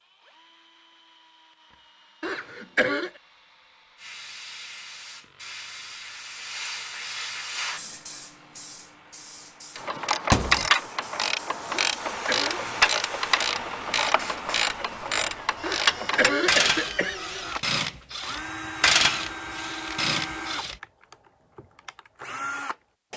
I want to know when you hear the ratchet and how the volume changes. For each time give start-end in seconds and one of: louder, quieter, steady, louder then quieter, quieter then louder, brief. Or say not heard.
9.8-20.8 steady.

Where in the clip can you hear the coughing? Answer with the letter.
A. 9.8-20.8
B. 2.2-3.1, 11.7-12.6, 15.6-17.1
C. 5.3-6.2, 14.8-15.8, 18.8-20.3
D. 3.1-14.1
B.